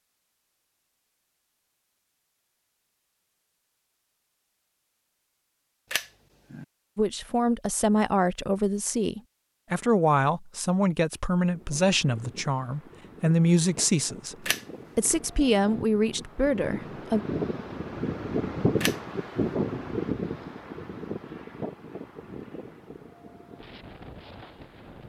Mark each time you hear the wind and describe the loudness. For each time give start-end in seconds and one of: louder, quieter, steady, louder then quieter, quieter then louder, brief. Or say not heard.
11.5-25.0 louder then quieter.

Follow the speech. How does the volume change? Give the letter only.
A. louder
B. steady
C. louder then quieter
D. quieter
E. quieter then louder
B.